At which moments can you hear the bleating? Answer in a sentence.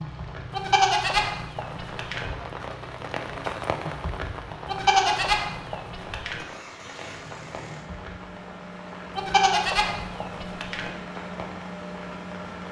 You can hear the bleating from 0.5 to 2.3 s, from 4.7 to 6.5 s and from 9.2 to 10.9 s.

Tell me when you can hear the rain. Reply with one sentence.
The rain can be heard from 0.0 to 12.6 s.